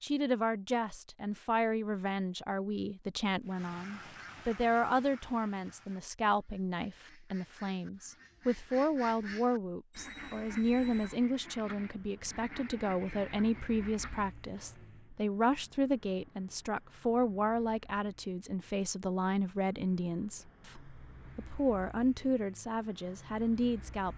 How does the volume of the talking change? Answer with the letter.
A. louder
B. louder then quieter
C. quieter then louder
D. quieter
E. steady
E.